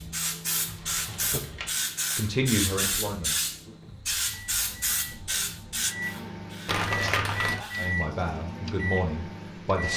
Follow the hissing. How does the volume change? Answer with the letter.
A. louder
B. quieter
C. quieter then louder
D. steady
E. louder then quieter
B.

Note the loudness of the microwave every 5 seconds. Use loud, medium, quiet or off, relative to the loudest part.
medium, loud.